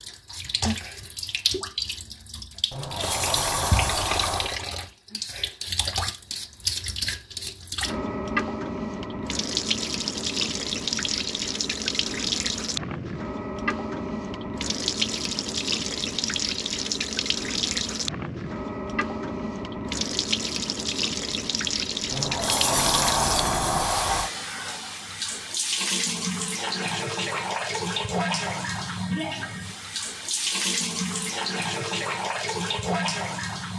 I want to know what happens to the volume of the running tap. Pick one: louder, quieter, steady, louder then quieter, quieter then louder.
steady.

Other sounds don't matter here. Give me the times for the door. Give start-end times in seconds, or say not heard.
2.7-4.6, 22.1-24.3.